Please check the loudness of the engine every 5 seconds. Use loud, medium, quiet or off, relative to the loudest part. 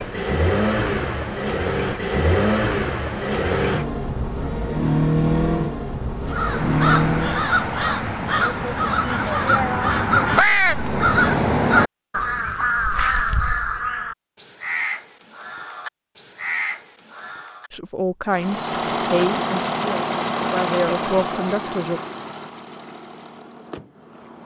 loud, loud, off, loud, medium.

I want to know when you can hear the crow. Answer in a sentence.
The crow can be heard from 6.3 to 17.7 s.